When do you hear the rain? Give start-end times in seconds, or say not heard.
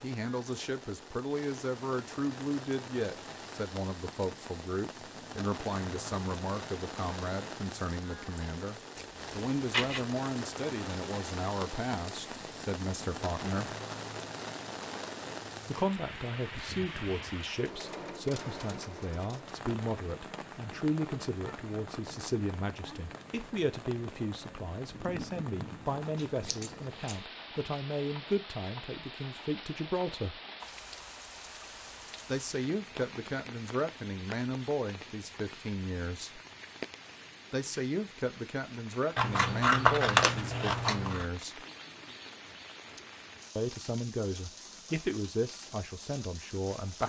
0.0-47.0.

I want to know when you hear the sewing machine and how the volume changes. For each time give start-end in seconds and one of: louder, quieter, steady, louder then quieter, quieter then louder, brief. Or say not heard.
not heard.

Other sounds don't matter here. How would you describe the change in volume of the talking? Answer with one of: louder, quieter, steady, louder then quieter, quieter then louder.
steady.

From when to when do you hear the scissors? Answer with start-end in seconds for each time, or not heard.
8.9-10.1, 26.1-27.1, 39.1-41.2.